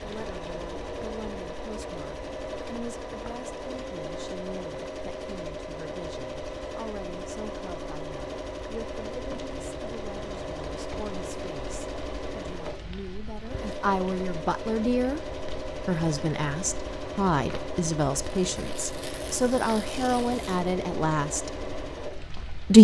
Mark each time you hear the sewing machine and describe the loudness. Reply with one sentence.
You can hear the sewing machine from 0.0 to 22.4 s, at a steady volume.